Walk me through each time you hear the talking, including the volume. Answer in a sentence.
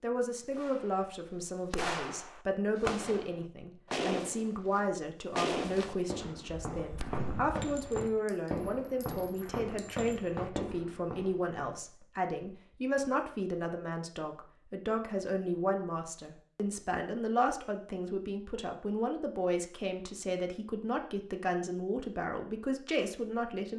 You can hear the talking from 0.0 to 23.7 s, at a steady volume.